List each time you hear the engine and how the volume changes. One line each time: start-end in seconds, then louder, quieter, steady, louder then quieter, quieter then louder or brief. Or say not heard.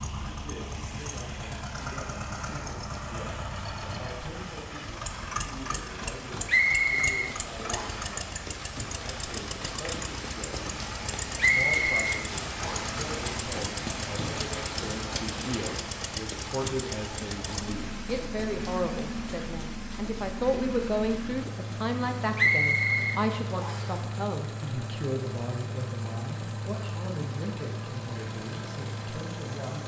0.0-29.8 steady.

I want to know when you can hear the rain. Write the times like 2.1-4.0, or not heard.
0.0-29.8.